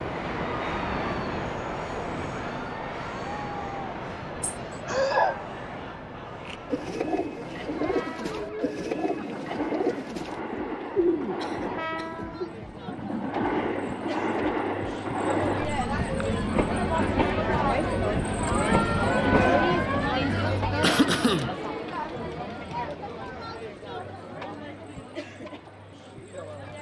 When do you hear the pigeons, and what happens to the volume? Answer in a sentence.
You can hear the pigeons from 6.5 to 12.5 s, at a steady volume.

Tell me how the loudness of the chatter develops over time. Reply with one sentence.
The volume of the chatter goes up, then down.